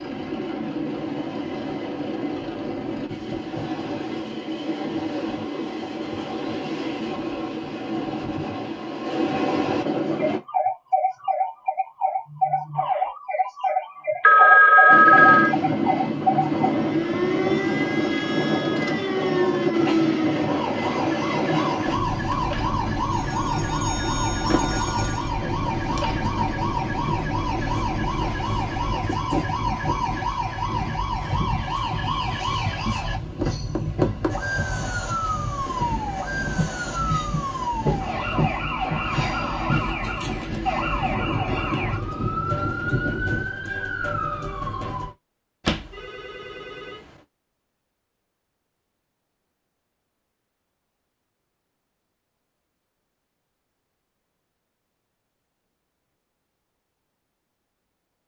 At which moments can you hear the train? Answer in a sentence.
You can hear the train from 0.0 to 10.4 s and from 14.8 to 43.5 s.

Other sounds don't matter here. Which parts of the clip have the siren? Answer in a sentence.
You can hear the siren from 10.1 to 45.1 s.